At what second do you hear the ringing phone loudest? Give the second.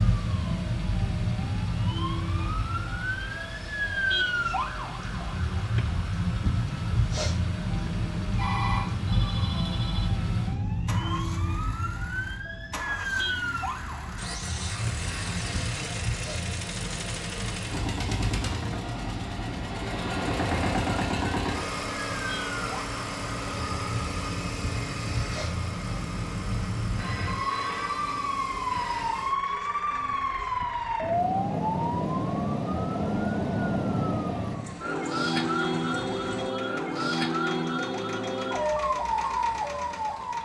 9 s.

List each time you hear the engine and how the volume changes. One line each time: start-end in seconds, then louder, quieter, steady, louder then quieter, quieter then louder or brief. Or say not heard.
0.0-40.3 louder then quieter.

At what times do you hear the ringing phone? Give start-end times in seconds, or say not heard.
8.3-10.1, 26.9-29.1.